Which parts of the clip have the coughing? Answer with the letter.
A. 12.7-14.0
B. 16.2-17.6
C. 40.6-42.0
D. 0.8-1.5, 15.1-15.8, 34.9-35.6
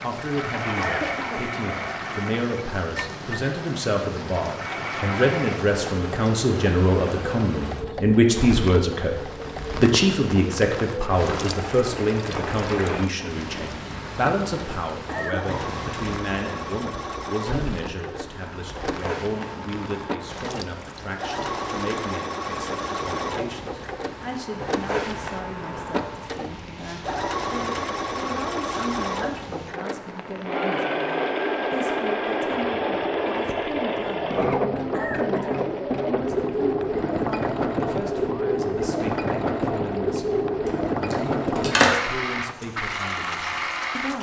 D.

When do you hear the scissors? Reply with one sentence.
The scissors can be heard from 40.6 to 42.0 s.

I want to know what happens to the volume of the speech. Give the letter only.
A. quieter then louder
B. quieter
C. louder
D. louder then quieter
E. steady
B.